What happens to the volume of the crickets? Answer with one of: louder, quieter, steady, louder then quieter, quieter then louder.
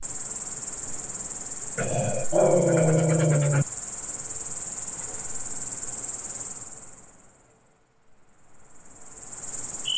quieter.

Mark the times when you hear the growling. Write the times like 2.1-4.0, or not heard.
1.8-3.6.